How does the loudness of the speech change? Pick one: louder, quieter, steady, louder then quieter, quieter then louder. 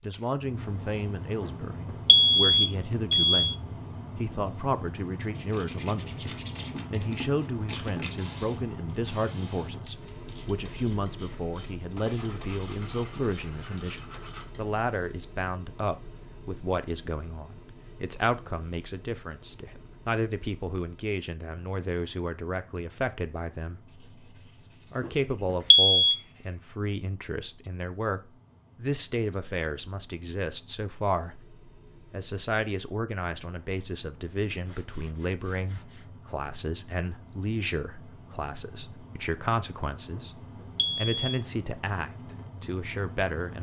steady.